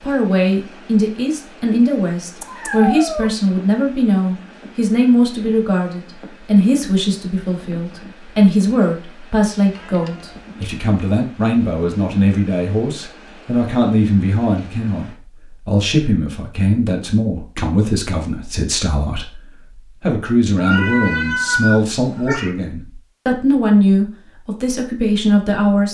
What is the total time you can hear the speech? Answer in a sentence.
The speech can be heard for 26 seconds in total.